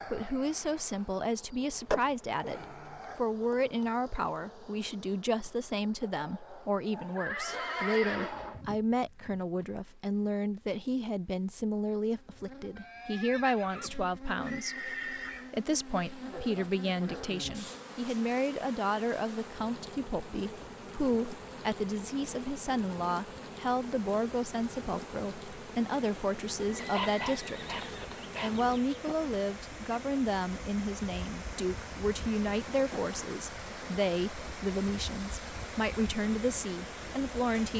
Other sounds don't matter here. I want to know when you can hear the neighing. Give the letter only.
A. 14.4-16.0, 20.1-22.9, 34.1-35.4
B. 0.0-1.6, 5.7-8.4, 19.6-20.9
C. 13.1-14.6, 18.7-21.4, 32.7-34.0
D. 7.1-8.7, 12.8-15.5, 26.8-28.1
D.